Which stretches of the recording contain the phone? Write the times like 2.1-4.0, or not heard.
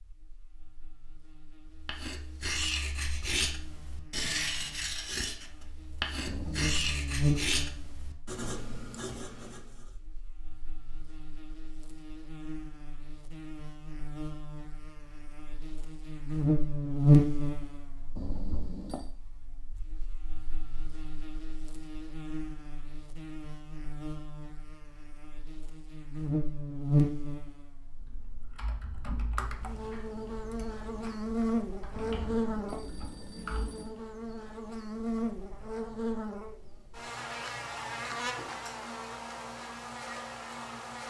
6.2-7.0, 18.1-19.1, 31.9-33.9.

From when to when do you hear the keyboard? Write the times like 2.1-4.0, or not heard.
27.9-34.1.